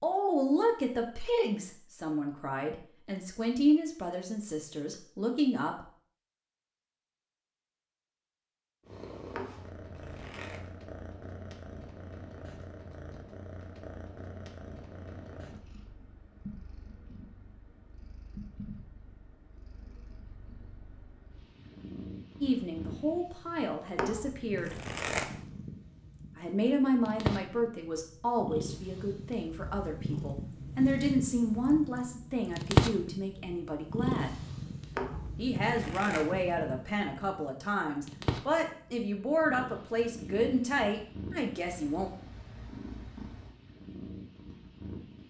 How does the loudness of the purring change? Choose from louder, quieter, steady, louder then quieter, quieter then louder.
louder then quieter.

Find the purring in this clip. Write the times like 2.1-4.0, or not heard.
8.8-45.2.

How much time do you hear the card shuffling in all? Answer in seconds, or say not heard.
4 s.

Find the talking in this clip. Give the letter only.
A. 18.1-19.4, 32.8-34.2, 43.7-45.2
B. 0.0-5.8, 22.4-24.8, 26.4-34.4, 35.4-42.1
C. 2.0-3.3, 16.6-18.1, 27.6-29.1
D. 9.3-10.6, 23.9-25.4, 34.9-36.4
B.